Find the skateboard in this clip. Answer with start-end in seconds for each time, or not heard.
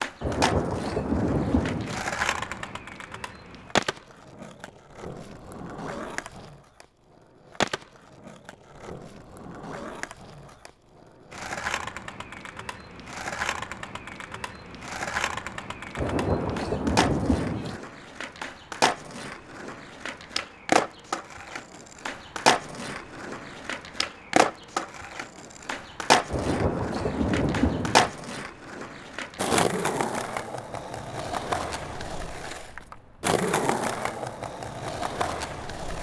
0.0-35.9.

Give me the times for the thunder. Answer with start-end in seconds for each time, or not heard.
0.2-2.0, 15.9-17.8, 26.3-28.1.